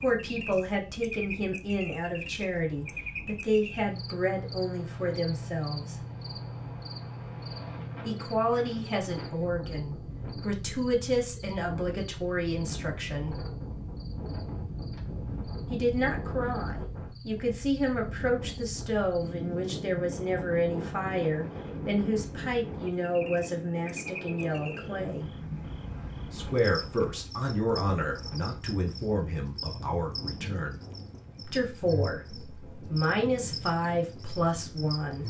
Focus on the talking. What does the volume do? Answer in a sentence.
The loudness of the talking stays about the same.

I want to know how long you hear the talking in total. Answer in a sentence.
The talking can be heard for 29 seconds in total.